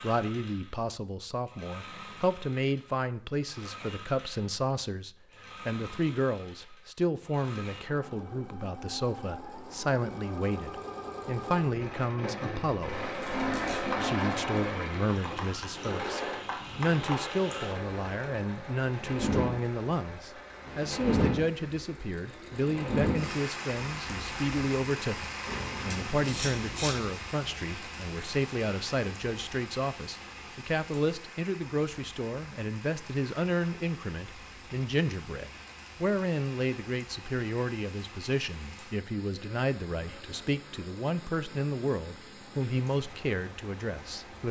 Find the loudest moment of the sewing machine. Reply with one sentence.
The loudest moment of the sewing machine is at 14 seconds.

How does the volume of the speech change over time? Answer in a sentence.
The volume of the speech stays about the same.